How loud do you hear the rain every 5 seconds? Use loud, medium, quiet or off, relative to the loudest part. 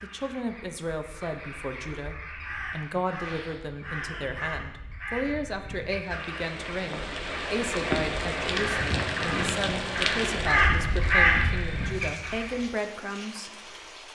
off, loud, medium.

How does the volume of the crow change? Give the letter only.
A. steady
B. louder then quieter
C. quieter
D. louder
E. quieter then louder
D.